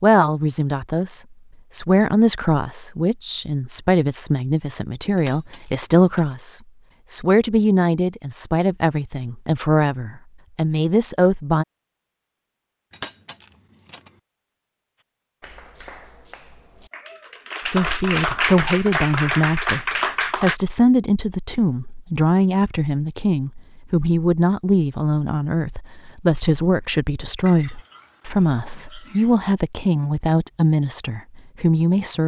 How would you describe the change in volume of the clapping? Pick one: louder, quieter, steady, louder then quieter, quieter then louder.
louder.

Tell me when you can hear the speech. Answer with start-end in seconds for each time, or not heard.
0.0-11.7, 17.6-32.2.